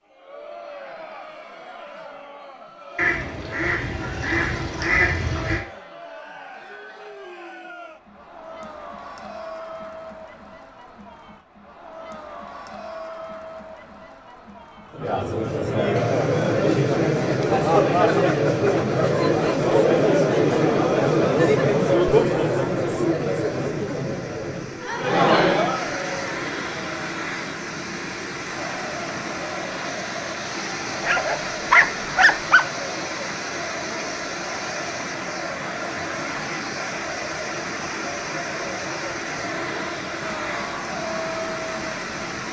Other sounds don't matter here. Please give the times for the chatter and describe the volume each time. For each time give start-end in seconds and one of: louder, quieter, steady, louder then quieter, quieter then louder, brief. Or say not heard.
0.1-42.4 louder then quieter.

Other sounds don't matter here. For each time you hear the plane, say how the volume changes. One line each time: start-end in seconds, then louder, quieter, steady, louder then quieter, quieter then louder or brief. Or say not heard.
not heard.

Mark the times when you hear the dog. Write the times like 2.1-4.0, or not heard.
31.0-32.6.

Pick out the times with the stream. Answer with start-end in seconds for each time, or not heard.
15.9-42.4.